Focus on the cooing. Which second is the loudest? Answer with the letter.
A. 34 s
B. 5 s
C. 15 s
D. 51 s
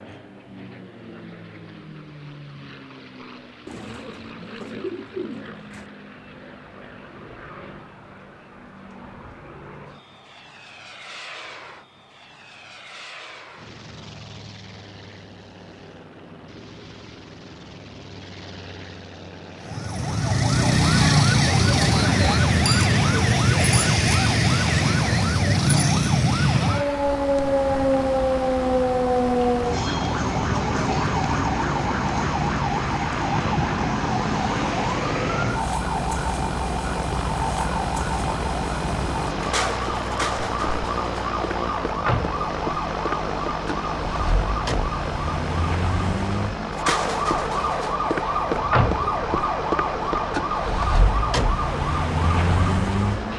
B.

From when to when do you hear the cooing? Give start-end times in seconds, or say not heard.
3.6-5.8.